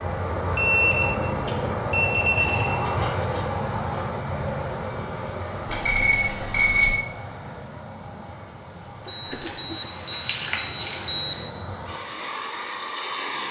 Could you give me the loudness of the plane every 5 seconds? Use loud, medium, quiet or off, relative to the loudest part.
loud, medium, medium.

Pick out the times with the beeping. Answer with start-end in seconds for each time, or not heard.
0.6-2.8, 5.7-7.0, 9.1-11.3.